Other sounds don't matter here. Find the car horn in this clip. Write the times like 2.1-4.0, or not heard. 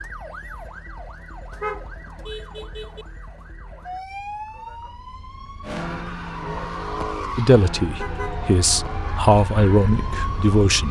1.5-3.0, 8.0-8.8.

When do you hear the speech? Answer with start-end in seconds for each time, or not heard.
7.3-10.8.